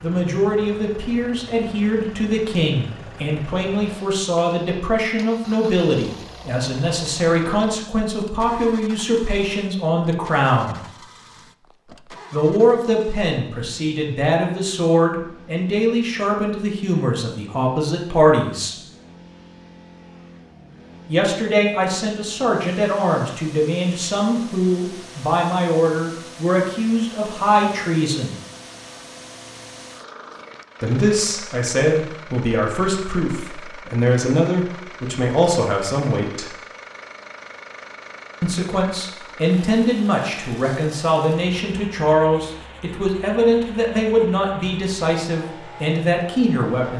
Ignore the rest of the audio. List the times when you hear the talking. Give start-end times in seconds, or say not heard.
0.0-10.8, 12.3-18.8, 21.1-28.4, 30.8-36.5, 38.4-46.9.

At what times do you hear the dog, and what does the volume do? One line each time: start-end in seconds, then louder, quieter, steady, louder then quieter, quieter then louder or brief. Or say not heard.
not heard.